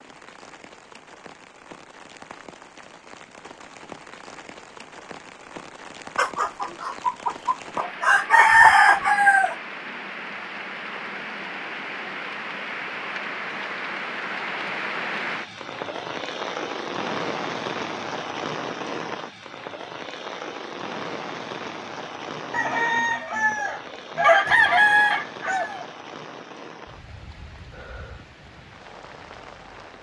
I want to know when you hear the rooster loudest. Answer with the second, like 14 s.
9 s.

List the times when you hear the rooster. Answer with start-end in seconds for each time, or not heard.
6.2-9.6, 22.5-25.9.